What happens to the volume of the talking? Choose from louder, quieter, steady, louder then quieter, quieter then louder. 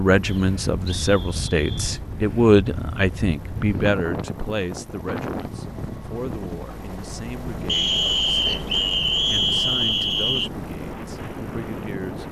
quieter.